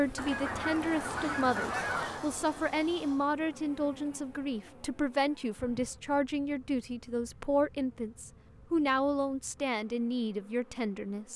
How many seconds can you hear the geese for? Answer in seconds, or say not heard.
2 s.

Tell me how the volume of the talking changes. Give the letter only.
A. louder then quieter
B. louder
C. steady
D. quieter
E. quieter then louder
C.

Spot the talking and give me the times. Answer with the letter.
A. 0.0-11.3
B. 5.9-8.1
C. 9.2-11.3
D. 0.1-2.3
A.